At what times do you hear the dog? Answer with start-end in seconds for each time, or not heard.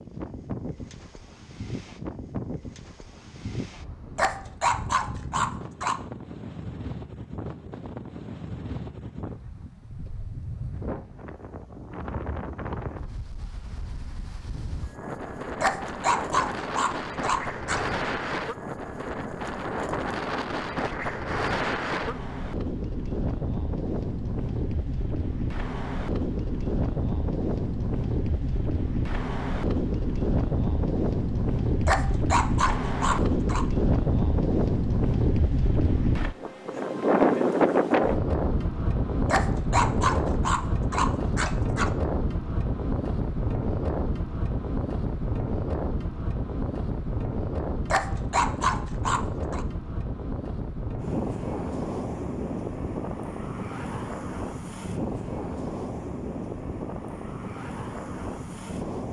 4.2-6.0, 15.6-17.9, 31.9-33.6, 39.2-42.0, 47.9-49.6.